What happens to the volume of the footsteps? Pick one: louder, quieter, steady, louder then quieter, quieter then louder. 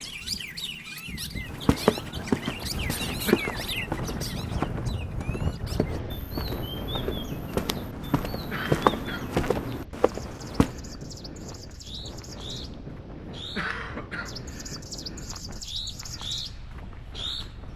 quieter then louder.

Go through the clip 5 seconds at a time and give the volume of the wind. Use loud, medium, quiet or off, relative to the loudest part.
loud, loud, medium, medium.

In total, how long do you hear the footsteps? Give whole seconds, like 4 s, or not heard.
9 s.